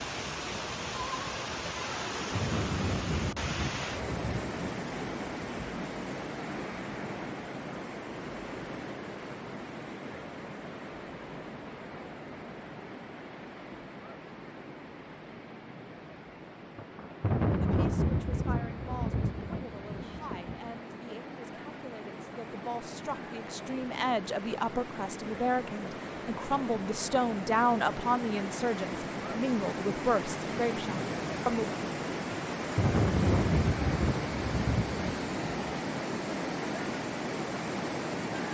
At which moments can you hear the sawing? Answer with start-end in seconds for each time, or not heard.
not heard.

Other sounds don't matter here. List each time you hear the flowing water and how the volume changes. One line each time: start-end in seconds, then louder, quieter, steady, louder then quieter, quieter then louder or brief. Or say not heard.
0.0-38.4 quieter then louder.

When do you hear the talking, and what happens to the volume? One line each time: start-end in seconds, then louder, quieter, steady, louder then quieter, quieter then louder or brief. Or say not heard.
17.6-31.8 louder.